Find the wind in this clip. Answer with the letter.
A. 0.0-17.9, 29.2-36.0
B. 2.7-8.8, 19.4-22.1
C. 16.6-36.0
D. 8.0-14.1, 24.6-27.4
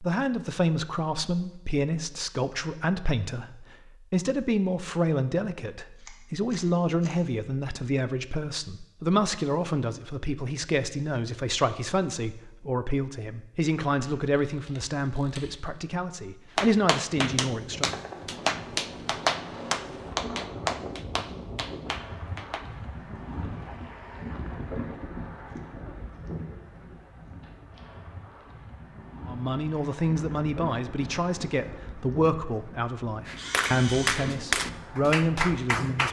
C.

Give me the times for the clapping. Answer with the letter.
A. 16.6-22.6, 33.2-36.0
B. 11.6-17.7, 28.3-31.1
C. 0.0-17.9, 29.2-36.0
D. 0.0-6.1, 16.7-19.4
A.